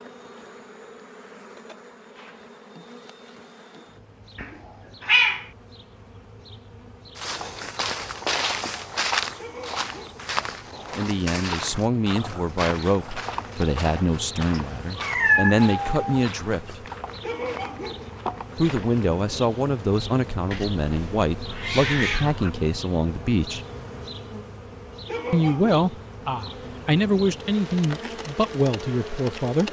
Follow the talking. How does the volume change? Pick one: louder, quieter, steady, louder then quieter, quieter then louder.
steady.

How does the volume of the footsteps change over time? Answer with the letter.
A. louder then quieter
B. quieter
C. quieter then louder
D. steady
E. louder
B.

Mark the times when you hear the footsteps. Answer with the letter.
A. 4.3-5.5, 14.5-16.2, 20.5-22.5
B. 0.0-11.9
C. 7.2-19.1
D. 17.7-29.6
C.